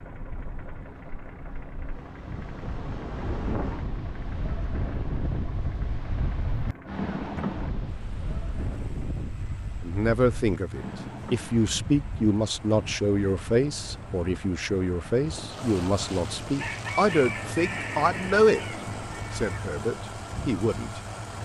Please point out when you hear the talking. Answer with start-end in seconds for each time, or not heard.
9.8-21.0.